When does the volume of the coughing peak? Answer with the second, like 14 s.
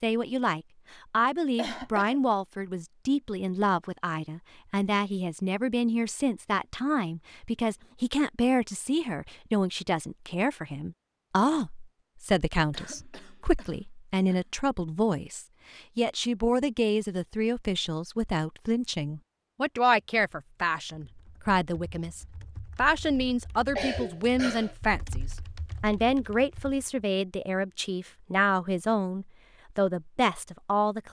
24 s.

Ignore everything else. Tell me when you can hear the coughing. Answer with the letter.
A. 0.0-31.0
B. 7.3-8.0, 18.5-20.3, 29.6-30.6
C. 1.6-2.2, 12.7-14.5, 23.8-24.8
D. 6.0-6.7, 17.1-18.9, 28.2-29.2
C.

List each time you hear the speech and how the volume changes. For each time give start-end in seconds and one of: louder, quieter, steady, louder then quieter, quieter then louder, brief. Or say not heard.
0.0-31.0 steady.